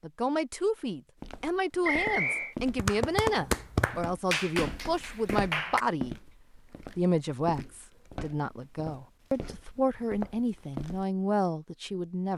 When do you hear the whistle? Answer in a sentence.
You can hear the whistle from 1.8 to 2.5 s.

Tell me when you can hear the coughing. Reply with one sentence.
The coughing can't be heard in this clip.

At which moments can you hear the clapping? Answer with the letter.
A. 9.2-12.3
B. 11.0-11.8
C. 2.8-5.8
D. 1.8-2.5
C.